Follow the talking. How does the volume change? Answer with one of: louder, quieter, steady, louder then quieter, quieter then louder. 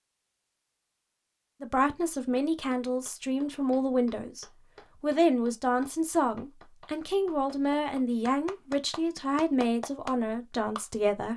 steady.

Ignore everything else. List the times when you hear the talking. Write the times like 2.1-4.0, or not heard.
1.6-11.3.